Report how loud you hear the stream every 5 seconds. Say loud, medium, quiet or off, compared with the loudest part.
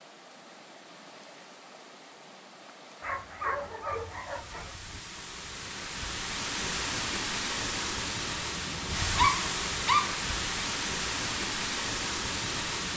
quiet, loud, loud.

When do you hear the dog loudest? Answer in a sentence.
The volume of the dog peaks at 9 seconds.